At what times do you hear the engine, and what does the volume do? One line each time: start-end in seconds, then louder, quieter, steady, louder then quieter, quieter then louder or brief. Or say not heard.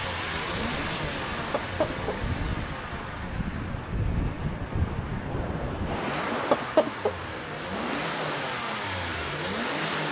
0.0-10.0 quieter then louder.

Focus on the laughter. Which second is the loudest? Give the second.
7 s.